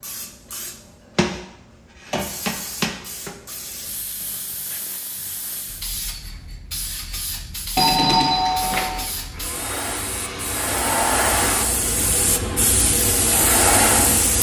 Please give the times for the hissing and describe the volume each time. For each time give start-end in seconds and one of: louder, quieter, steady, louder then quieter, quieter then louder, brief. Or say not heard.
0.0-14.3 quieter then louder.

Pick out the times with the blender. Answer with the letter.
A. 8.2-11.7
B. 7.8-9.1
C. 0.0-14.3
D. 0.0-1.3
A.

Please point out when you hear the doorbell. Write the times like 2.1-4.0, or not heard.
7.8-9.1.